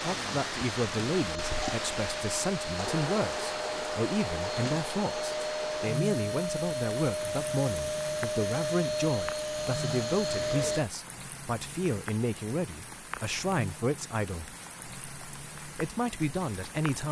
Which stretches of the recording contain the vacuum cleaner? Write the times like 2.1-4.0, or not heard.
0.0-10.8.